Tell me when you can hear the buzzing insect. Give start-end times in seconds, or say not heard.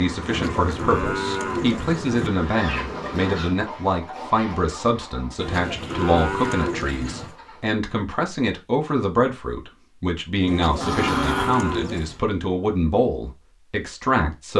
0.0-3.4.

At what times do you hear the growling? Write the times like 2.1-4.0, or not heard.
10.8-11.6.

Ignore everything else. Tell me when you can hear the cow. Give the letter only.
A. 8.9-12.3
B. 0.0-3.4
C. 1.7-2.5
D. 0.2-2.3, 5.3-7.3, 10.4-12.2
D.